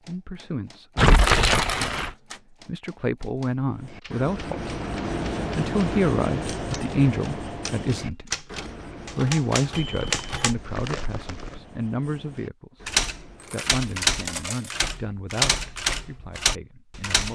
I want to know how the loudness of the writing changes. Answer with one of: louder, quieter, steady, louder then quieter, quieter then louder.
quieter.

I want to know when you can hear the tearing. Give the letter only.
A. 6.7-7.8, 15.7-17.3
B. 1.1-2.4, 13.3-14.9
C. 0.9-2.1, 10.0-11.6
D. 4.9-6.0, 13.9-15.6
C.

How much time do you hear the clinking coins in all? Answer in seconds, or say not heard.
3 s.